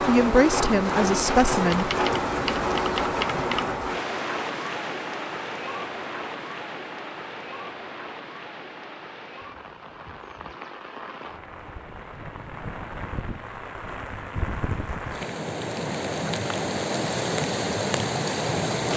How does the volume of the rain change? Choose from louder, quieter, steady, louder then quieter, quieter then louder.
quieter then louder.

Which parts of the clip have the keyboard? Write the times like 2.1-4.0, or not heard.
1.5-3.8.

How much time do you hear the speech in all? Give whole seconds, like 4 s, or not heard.
2 s.